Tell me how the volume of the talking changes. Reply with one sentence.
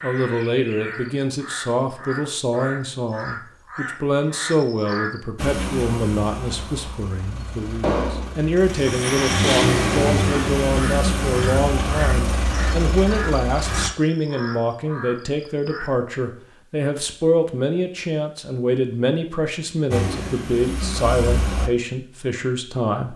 The volume of the talking stays about the same.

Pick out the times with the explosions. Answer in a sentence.
The explosions can be heard from 7.8 to 8.3 s.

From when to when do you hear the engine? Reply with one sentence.
You can hear the engine from 5.3 to 13.9 s and from 19.9 to 21.7 s.